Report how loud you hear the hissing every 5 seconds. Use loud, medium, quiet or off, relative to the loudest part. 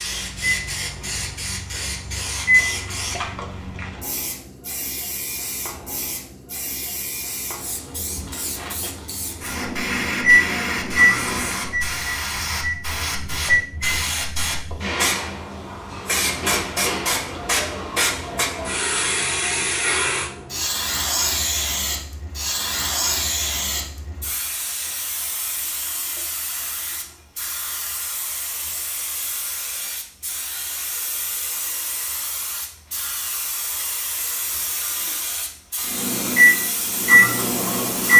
medium, medium, loud, loud, loud, medium, medium, medium.